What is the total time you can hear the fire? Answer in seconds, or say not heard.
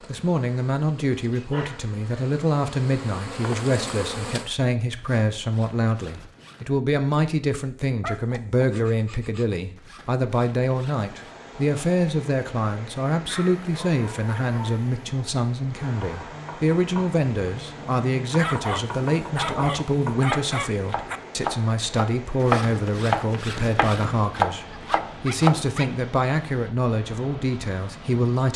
not heard.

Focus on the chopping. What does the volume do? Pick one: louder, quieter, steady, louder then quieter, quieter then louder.
louder.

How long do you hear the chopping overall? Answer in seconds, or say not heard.
10 s.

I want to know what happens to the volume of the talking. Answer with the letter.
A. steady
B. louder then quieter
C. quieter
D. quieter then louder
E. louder
A.